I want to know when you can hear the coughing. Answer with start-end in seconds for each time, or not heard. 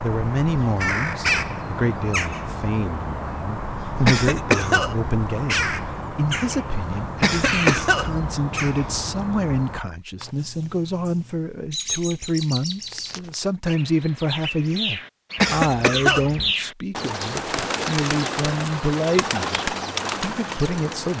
4.0-5.1, 7.2-8.3, 15.3-16.5.